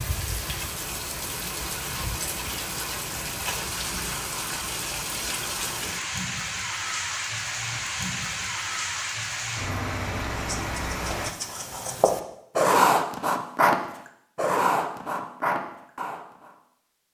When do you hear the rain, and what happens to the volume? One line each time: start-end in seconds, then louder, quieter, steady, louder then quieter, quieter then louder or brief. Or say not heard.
0.0-11.3 steady.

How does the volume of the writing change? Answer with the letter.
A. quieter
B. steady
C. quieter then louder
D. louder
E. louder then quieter
E.